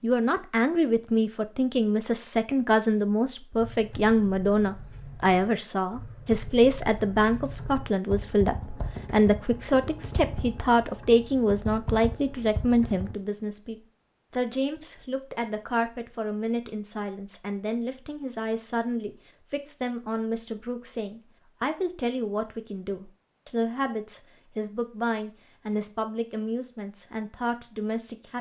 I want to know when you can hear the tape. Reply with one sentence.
You can't hear the tape here.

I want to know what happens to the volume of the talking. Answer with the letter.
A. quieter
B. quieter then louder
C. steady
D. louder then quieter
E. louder
A.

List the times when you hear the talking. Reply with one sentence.
The talking can be heard from 0.0 to 28.3 s.